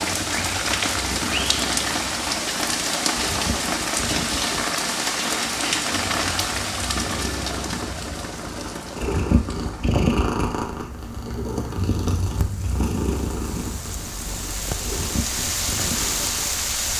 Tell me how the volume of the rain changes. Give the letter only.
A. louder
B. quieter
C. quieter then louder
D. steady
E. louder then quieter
C.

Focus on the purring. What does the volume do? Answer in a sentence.
The volume of the purring goes up, then down.